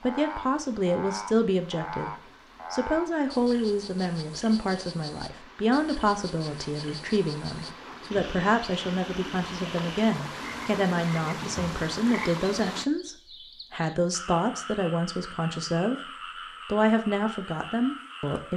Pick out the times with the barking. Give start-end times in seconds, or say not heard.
not heard.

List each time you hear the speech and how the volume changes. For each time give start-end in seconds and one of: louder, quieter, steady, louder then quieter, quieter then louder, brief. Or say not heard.
0.0-16.0 steady
16.6-18.5 brief.